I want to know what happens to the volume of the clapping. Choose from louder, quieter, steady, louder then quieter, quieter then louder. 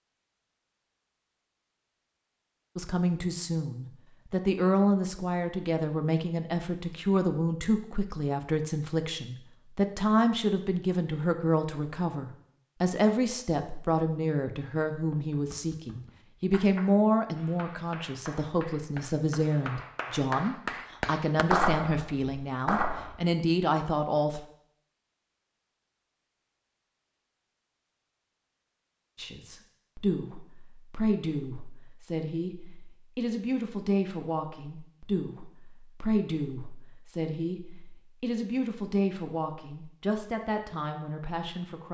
louder.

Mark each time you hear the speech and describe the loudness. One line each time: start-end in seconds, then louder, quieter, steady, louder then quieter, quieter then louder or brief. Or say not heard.
2.8-24.4 steady
29.1-41.8 steady.